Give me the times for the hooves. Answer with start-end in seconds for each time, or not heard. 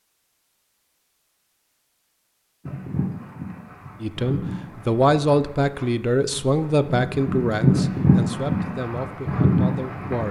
2.6-10.2.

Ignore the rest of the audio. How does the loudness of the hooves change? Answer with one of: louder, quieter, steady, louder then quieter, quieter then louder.
louder.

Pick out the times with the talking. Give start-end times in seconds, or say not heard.
4.0-10.2.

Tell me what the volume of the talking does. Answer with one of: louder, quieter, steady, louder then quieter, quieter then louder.
quieter.